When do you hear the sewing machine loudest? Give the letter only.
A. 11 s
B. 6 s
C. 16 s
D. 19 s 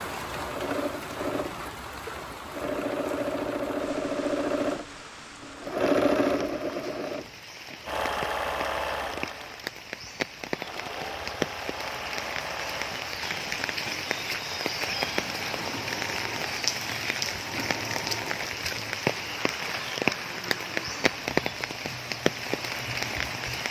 B.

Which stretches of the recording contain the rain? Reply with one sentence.
The rain can be heard from 0.0 to 23.6 s.